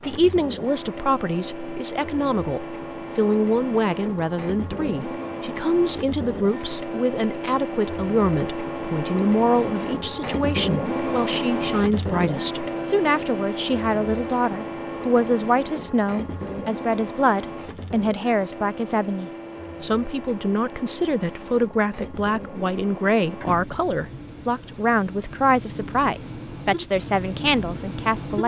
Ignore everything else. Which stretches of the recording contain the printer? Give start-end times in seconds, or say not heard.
0.0-28.4.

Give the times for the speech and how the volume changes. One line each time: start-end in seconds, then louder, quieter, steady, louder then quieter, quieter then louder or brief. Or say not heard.
0.0-28.4 steady.